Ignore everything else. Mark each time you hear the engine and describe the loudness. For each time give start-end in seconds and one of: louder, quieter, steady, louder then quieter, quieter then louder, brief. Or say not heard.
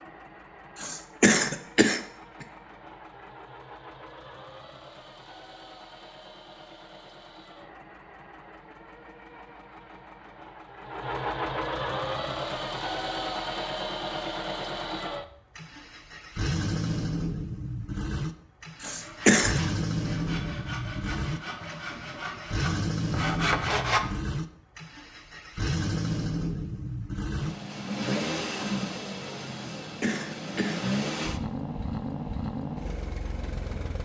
0.0-34.0 louder.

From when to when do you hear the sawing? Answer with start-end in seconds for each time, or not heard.
18.8-24.1.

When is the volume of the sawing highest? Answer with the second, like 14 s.
24 s.